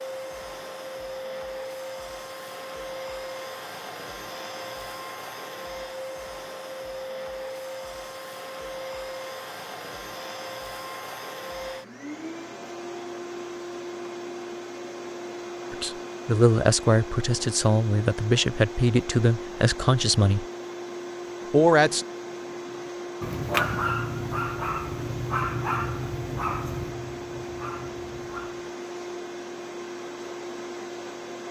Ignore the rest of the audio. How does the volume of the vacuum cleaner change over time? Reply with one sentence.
The loudness of the vacuum cleaner stays about the same.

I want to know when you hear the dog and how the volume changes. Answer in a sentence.
The dog can be heard from 22.3 to 28.7 s, getting quieter.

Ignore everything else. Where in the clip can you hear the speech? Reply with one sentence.
You can hear the speech from 15.7 to 20.4 s and from 21.5 to 22.1 s.